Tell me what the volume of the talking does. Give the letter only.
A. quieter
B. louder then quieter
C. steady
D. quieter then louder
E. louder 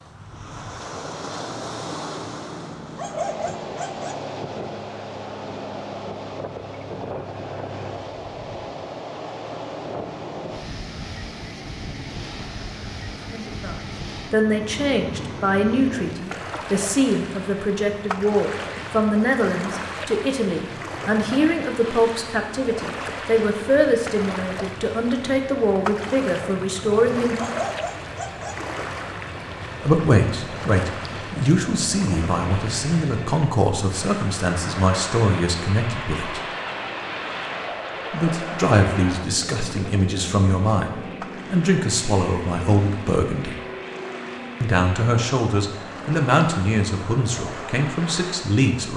C.